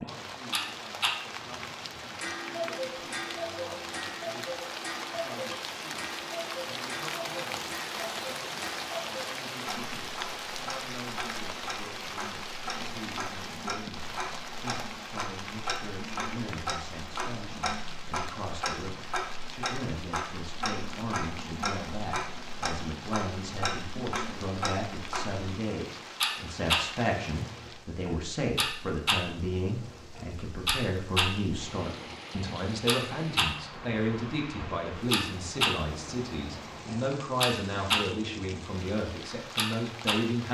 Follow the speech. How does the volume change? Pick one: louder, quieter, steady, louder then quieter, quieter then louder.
louder.